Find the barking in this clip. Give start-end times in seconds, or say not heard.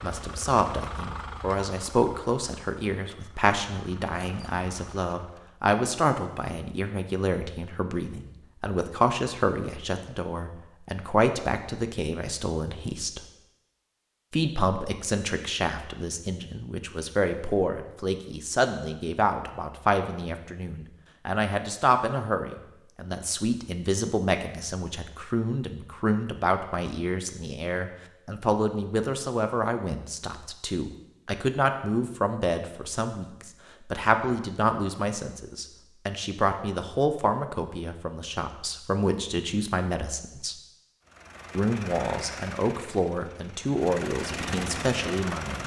not heard.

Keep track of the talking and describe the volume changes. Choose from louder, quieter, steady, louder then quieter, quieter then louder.
steady.